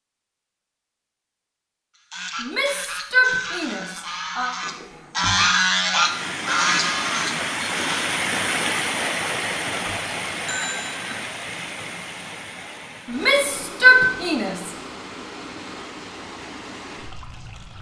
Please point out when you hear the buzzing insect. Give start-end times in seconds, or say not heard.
not heard.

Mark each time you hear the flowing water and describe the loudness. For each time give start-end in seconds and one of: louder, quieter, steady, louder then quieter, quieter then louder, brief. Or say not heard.
6.0-17.7 quieter.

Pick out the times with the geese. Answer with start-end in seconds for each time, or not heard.
1.9-8.0.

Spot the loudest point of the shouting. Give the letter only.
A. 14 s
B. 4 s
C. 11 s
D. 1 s
A.